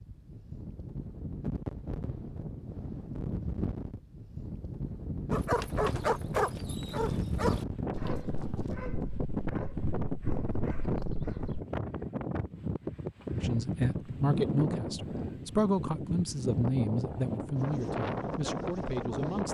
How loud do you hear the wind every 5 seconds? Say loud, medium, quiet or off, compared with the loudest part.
medium, loud, loud, loud.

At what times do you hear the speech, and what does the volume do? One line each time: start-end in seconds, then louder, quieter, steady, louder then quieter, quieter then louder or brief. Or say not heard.
13.4-19.4 quieter.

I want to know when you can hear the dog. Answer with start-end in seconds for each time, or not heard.
5.3-11.6.